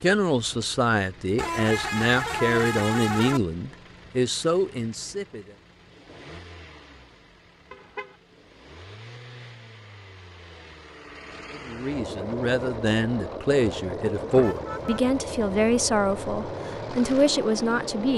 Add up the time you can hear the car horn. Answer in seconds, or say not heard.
3 s.